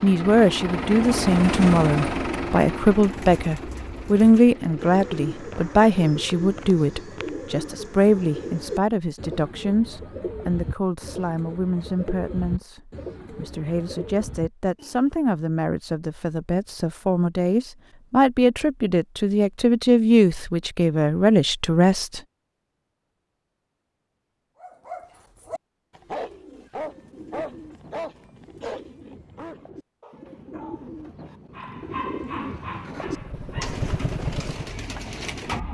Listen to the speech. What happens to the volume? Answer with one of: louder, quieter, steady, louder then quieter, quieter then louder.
quieter then louder.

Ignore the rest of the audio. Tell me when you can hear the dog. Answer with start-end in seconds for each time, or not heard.
24.6-33.8.